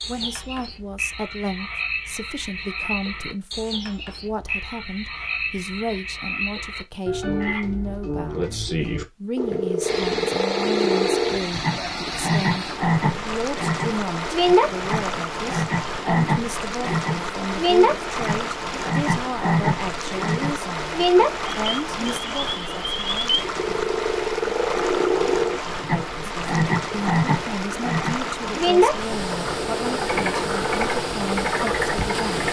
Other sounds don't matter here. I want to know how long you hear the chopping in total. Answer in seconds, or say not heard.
not heard.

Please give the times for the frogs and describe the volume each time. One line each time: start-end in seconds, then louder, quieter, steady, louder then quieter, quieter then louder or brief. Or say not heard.
0.0-32.4 louder.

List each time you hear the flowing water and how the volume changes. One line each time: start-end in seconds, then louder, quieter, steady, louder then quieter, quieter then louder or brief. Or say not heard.
9.8-32.4 steady.